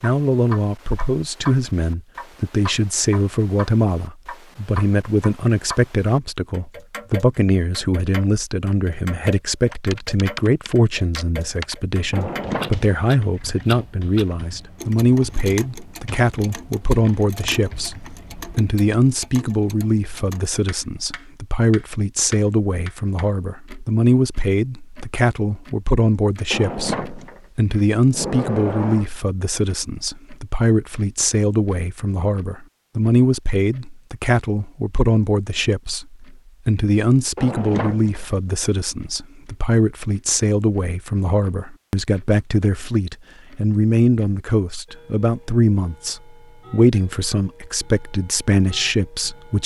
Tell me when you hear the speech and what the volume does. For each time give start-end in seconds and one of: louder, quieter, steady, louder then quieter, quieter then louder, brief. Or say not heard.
0.0-49.6 steady.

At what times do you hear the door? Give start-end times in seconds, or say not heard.
12.1-13.8, 26.5-29.1, 37.4-38.2.